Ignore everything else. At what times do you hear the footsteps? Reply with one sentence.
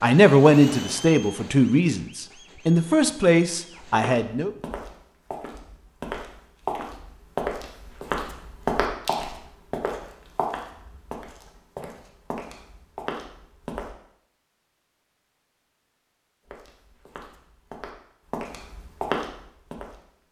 The footsteps can be heard from 4.0 to 13.9 s and from 16.4 to 20.0 s.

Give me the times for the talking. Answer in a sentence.
The talking can be heard from 0.0 to 4.5 s.